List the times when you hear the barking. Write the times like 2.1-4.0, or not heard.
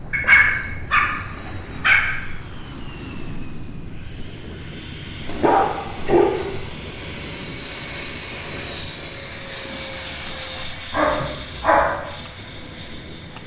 0.1-2.1, 5.2-6.7, 10.9-11.9.